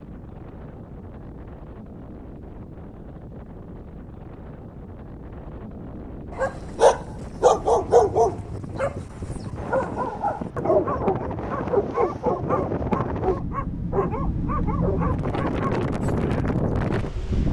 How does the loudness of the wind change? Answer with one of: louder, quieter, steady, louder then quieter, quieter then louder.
louder.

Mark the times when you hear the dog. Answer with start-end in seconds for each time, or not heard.
6.3-15.9.